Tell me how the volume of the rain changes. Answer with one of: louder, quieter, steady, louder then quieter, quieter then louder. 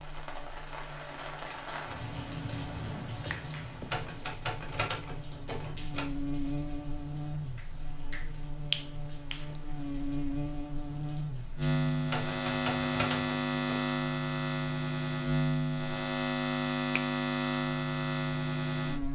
quieter.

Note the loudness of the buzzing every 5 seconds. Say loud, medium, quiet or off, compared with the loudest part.
quiet, medium, loud, loud.